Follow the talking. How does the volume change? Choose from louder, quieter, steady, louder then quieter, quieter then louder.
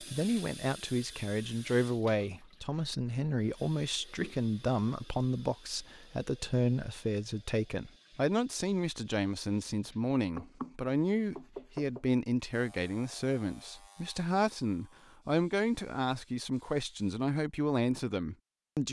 steady.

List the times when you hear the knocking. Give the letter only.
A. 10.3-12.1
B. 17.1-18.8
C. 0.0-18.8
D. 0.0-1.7
A.